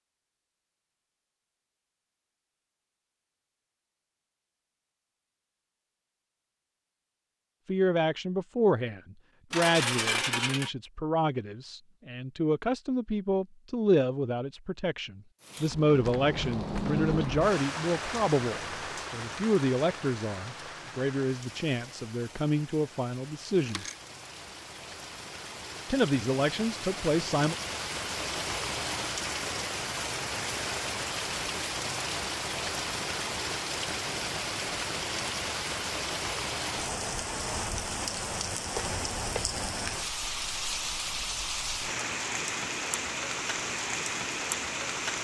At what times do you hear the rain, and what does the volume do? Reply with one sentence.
You can hear the rain from 15.4 to 45.1 s, getting quieter then louder.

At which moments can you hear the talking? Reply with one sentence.
The talking can be heard from 7.7 to 23.9 s and from 25.9 to 27.6 s.